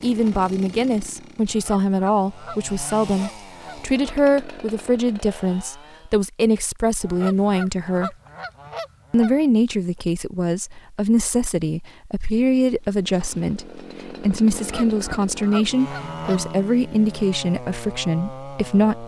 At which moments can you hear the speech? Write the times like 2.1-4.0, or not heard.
0.0-8.2, 9.1-19.0.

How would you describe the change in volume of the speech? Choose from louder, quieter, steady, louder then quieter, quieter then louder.
steady.